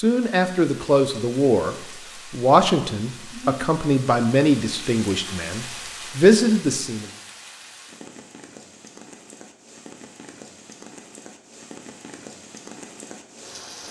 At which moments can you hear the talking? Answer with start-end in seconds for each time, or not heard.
0.0-7.1.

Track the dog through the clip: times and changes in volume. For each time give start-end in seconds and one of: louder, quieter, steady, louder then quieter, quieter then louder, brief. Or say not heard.
not heard.